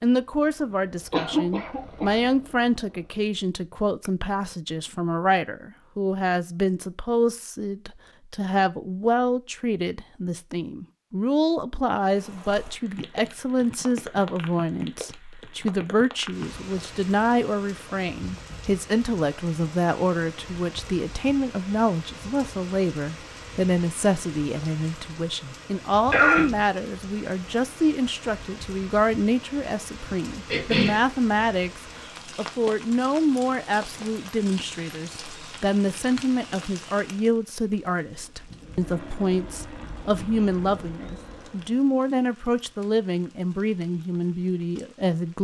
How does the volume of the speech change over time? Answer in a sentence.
The loudness of the speech stays about the same.